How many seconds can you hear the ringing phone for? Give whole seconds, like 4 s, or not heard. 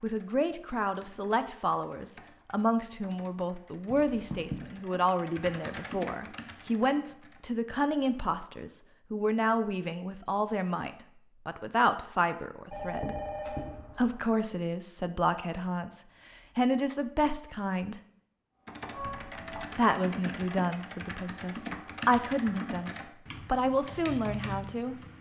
3 s.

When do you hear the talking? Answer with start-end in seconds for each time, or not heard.
0.0-13.2, 13.9-17.9, 19.8-24.9.